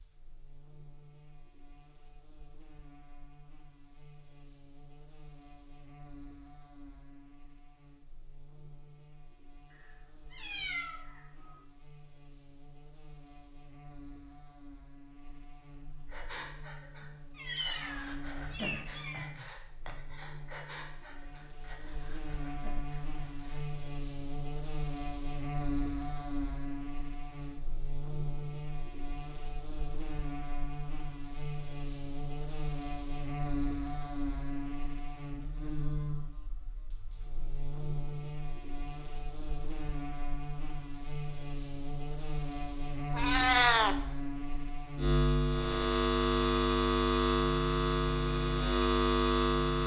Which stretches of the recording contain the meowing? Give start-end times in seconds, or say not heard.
9.7-11.6, 17.4-19.2, 43.1-44.0.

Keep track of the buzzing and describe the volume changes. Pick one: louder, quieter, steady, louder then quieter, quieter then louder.
louder.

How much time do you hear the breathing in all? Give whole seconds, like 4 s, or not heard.
8 s.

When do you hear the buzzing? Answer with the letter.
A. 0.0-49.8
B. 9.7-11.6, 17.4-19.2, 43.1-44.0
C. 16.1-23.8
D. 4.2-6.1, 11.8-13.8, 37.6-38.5
A.